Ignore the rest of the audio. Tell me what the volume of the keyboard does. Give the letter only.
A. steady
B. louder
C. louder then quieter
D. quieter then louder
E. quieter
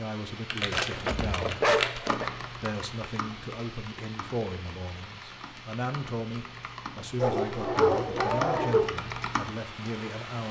D.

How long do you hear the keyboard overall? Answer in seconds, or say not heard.
9 s.